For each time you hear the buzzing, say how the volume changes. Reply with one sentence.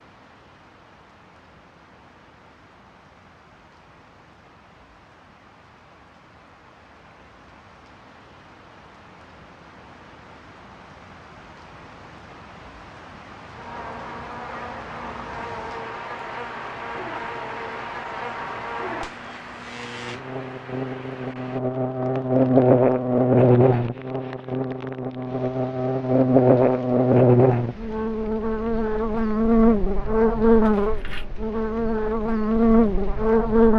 You can hear the buzzing from 13.6 to 33.7 s, getting louder.